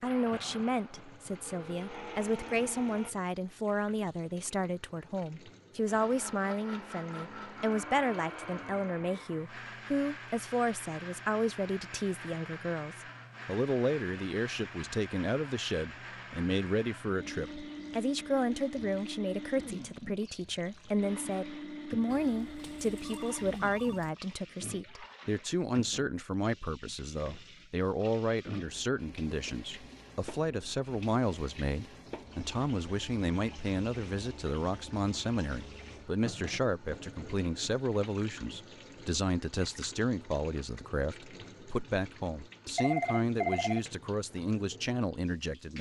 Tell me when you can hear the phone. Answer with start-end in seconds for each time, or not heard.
1.4-3.1, 22.1-24.1, 42.8-43.8.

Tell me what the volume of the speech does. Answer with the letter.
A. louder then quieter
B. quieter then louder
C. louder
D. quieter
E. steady
E.